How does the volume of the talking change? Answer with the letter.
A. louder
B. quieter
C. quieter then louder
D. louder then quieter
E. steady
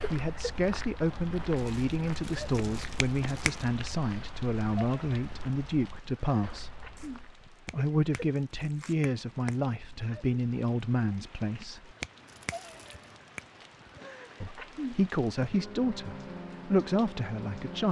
E.